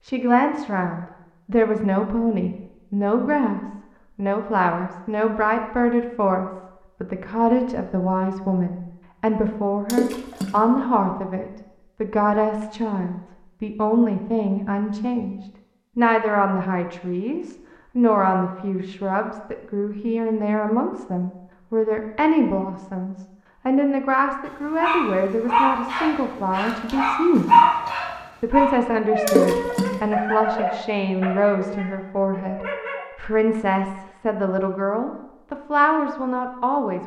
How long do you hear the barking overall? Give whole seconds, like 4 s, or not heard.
8 s.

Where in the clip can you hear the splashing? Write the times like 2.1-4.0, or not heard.
9.8-10.6, 29.2-29.9.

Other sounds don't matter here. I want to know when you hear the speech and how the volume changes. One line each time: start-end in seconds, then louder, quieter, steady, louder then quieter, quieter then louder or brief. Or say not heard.
0.0-27.6 steady
28.4-37.0 steady.